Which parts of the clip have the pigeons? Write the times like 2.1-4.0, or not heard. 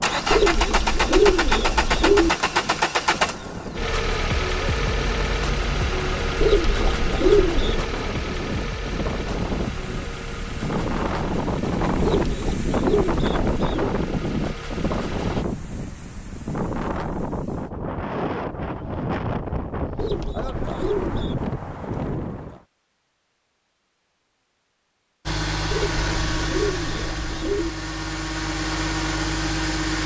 0.3-2.3, 6.4-7.9, 12.0-13.9, 19.9-21.4, 25.7-27.7.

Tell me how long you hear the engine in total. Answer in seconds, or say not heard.
20 s.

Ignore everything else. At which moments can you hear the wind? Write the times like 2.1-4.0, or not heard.
0.0-22.6.